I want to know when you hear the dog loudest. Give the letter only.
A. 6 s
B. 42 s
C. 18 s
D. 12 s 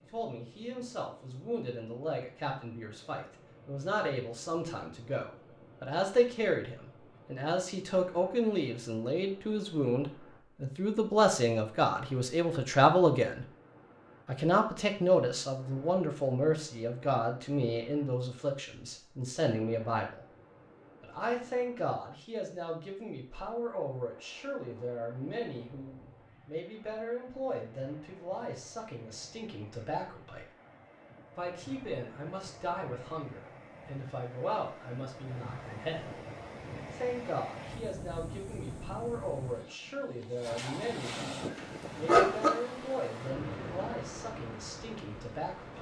B.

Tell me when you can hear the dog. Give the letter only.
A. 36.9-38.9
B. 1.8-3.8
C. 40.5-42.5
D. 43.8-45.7
C.